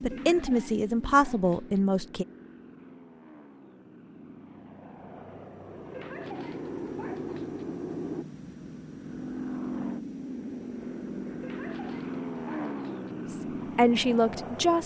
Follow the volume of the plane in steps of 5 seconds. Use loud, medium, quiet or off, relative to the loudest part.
medium, loud, loud.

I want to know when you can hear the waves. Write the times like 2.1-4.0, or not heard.
not heard.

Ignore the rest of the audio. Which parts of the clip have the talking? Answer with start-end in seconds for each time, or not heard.
0.0-2.2, 13.3-14.8.